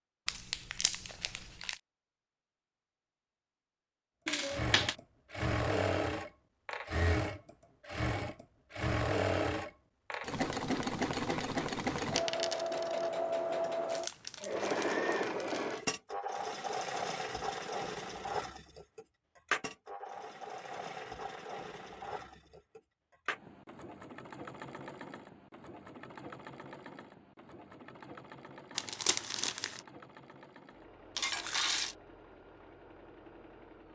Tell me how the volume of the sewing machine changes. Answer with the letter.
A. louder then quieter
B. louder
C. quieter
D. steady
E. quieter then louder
C.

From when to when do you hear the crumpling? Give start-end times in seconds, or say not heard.
0.2-1.8, 13.8-15.8, 28.8-29.8.